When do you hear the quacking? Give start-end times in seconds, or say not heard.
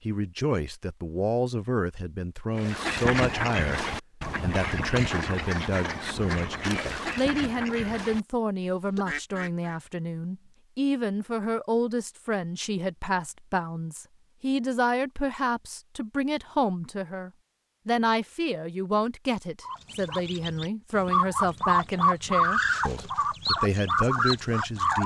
2.5-9.8, 19.6-25.0.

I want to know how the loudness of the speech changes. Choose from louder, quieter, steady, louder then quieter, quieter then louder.
steady.